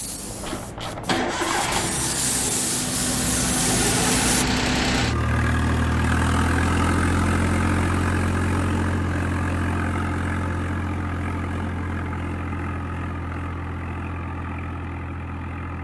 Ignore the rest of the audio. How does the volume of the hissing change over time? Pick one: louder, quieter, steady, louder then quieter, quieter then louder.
louder.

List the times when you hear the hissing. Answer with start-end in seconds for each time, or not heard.
0.0-4.5.